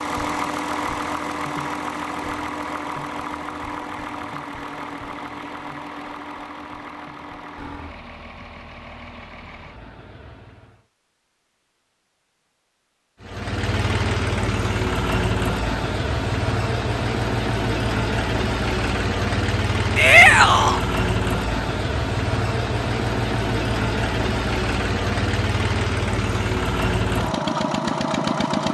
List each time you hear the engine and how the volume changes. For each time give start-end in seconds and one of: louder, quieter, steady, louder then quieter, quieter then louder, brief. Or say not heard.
0.0-10.8 quieter
13.2-28.6 steady.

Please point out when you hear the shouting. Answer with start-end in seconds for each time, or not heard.
19.9-20.8.